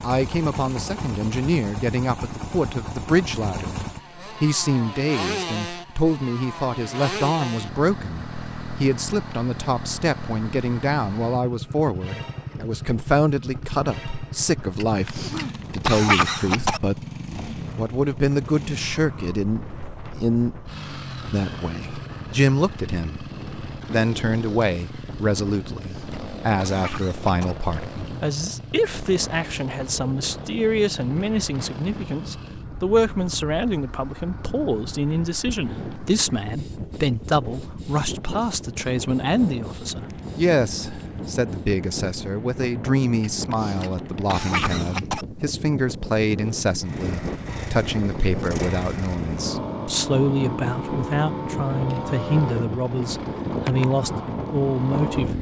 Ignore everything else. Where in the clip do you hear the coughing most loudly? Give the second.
16 s.